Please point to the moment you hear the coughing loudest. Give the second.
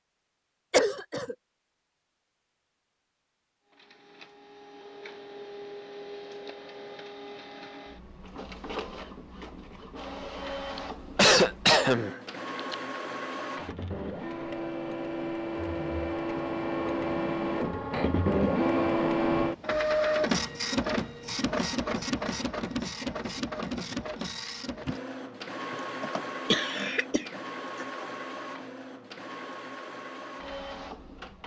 11 s.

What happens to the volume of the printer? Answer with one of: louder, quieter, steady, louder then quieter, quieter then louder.
louder then quieter.